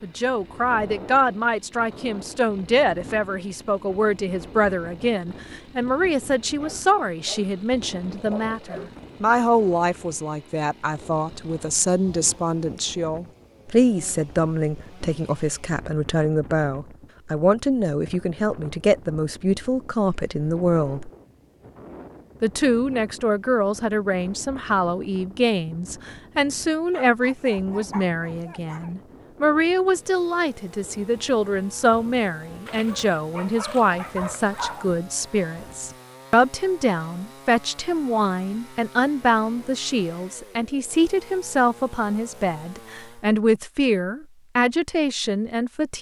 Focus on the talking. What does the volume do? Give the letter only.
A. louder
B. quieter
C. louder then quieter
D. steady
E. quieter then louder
D.